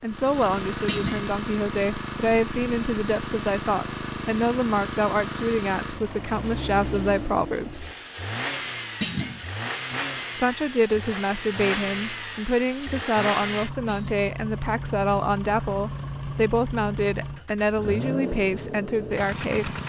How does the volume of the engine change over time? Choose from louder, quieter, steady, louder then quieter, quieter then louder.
steady.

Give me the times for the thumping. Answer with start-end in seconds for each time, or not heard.
0.8-1.3, 9.0-9.4, 13.8-14.3.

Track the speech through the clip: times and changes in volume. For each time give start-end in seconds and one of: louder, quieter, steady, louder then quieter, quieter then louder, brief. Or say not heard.
0.0-7.9 steady
10.3-19.8 steady.